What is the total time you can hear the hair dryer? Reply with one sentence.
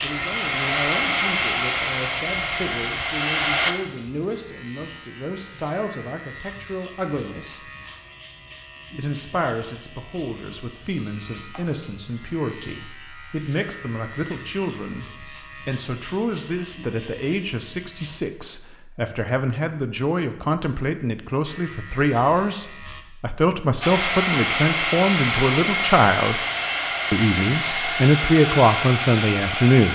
The hair dryer can be heard for 10 seconds in total.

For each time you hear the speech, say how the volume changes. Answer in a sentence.
The speech can be heard from 0.0 to 7.6 s, at a steady volume; from 8.9 to 26.4 s, getting louder; and briefly from 27.1 to 29.9 s.